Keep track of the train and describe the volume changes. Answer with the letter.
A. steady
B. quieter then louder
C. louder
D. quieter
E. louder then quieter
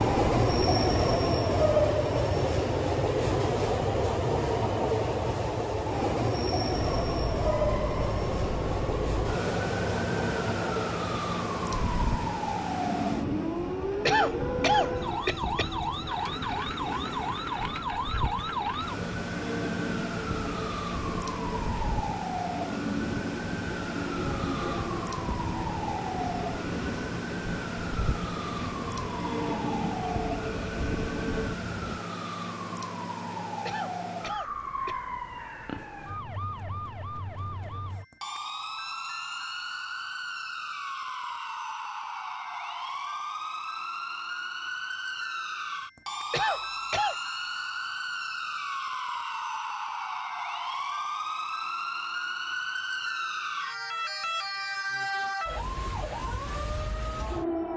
D.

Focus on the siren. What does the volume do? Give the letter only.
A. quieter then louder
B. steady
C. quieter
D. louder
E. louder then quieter
B.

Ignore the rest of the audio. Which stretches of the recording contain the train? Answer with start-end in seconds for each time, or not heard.
0.0-32.0.